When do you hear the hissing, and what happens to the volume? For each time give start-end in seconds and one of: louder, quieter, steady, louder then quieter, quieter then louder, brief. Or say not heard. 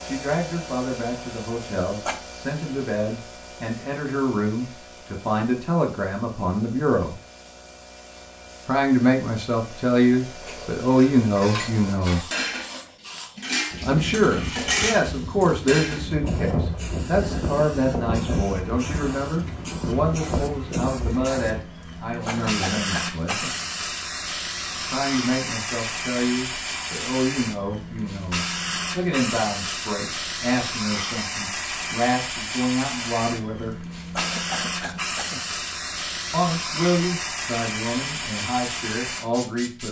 0.0-39.8 louder.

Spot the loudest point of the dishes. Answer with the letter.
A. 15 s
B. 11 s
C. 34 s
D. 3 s
A.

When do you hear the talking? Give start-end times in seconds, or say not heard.
0.0-7.2, 8.7-12.2, 13.8-23.5, 24.9-33.8, 36.3-39.8.